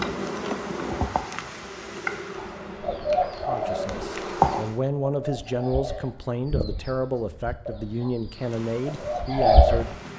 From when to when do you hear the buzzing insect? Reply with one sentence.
The buzzing insect can be heard from 0.0 to 4.8 s and from 8.3 to 10.1 s.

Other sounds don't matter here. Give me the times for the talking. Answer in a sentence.
You can hear the talking from 3.5 to 9.9 s.